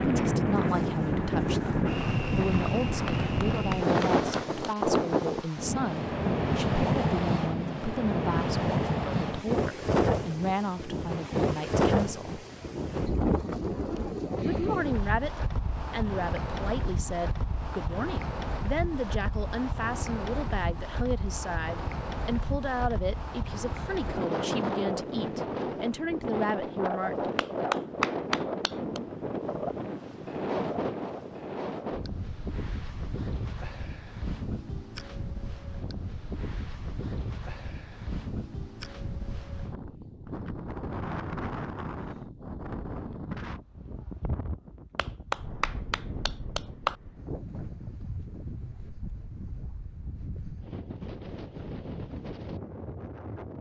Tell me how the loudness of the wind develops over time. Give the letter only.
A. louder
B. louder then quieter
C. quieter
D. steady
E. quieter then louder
C.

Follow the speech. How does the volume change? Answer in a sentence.
The volume of the speech stays about the same.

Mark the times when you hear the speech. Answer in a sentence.
You can hear the speech from 0.0 to 12.4 s and from 14.4 to 27.3 s.